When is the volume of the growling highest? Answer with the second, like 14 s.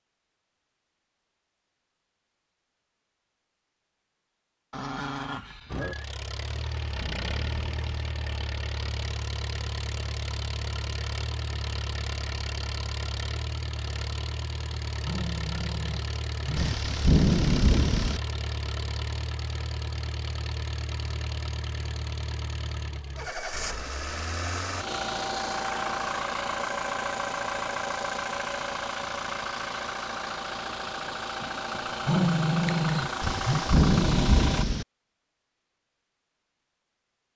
32 s.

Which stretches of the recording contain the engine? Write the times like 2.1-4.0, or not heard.
5.7-34.6.